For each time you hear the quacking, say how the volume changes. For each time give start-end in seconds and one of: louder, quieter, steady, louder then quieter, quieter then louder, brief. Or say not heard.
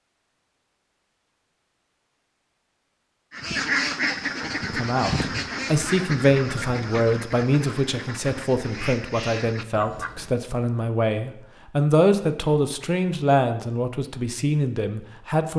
3.3-10.4 quieter.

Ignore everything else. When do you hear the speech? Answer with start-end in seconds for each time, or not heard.
4.6-15.5.